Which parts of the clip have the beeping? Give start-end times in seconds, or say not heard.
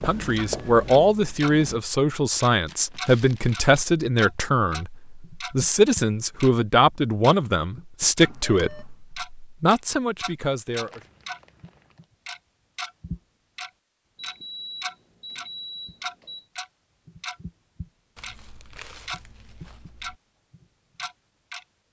8.2-8.8, 14.2-16.4.